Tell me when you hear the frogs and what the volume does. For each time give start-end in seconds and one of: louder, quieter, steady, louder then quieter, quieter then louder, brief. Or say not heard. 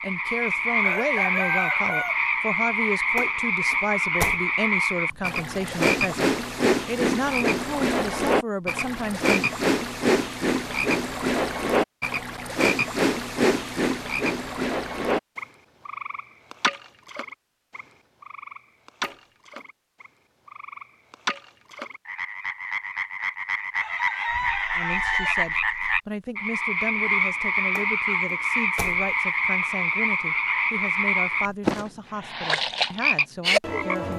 0.0-34.1 quieter then louder.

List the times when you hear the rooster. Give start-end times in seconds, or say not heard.
0.8-2.2, 23.8-25.4.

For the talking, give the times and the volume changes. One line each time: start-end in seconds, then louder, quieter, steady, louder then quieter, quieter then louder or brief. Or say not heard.
0.0-9.3 steady
24.8-34.1 steady.